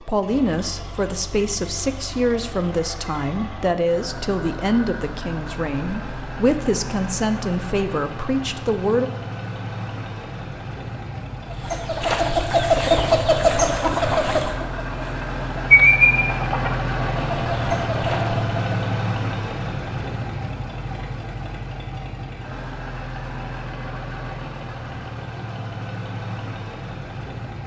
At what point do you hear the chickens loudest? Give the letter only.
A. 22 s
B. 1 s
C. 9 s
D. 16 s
D.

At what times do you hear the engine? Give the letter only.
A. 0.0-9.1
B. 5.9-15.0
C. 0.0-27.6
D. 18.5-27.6
C.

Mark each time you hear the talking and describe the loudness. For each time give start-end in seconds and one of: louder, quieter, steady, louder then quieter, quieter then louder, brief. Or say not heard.
0.0-9.1 steady.